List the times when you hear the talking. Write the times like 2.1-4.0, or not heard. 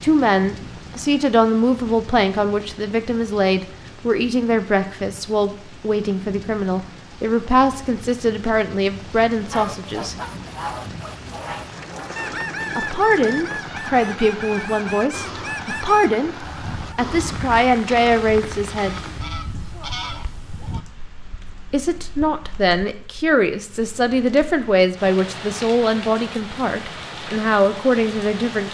0.0-10.2, 12.8-16.4, 16.9-18.9, 21.7-28.6.